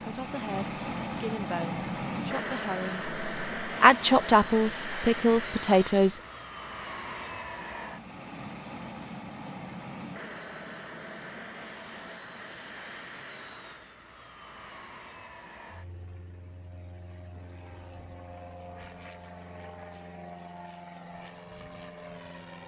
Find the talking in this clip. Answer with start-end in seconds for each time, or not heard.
0.0-6.2.